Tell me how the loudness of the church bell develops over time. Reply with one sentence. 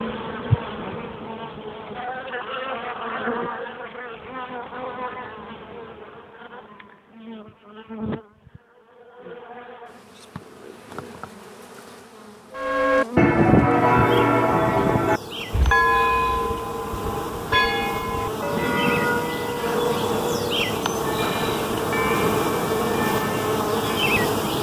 The volume of the church bell goes down.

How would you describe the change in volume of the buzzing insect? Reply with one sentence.
The volume of the buzzing insect goes down, then up.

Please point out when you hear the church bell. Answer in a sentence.
The church bell can be heard from 12.6 to 24.1 s.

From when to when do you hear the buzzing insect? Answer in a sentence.
The buzzing insect can be heard from 0.0 to 24.5 s.